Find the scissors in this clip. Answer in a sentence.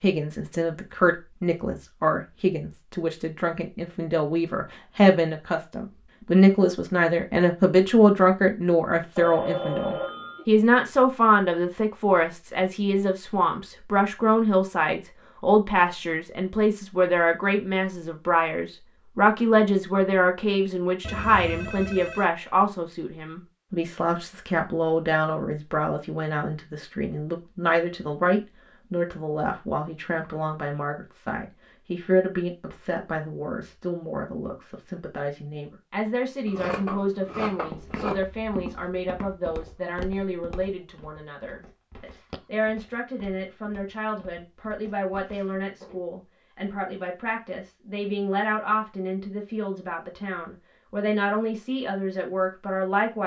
You can hear the scissors from 36.5 to 38.2 s.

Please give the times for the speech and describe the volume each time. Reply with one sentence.
You can hear the speech from 0.0 to 53.2 s, getting quieter.